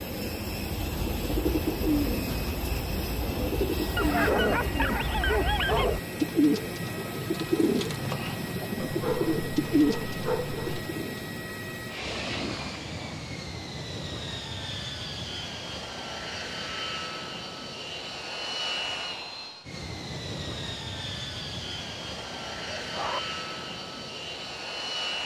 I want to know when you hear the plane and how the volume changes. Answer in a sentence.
The plane can be heard from 0.0 to 25.2 s, at a steady volume.